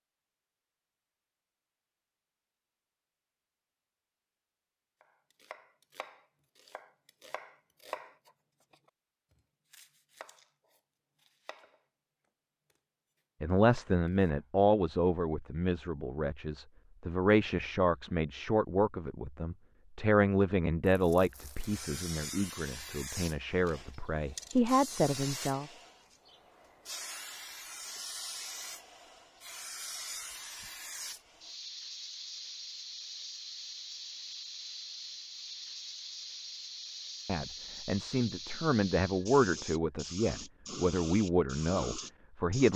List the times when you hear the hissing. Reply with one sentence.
You can hear the hissing from 21.6 to 42.7 s.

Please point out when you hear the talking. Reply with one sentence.
You can hear the talking from 13.4 to 25.6 s and from 37.2 to 42.7 s.